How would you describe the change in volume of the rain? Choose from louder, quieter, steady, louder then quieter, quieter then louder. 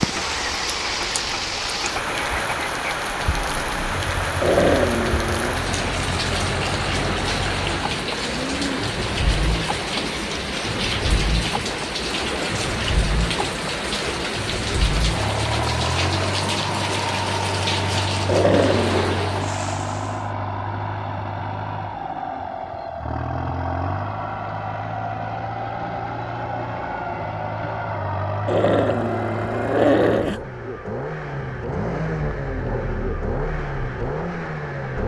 steady.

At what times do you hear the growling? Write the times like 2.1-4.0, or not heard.
4.4-5.5, 18.2-19.2, 28.4-30.4.